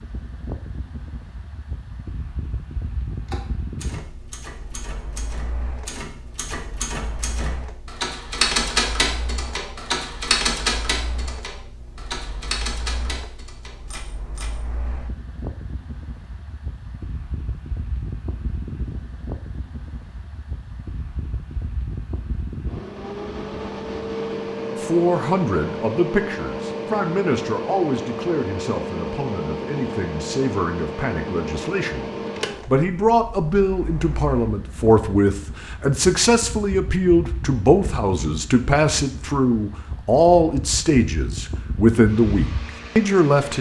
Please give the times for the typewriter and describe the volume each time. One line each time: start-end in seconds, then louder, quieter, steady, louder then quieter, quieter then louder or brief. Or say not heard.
3.1-14.6 louder then quieter.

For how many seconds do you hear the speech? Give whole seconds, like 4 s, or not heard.
19 s.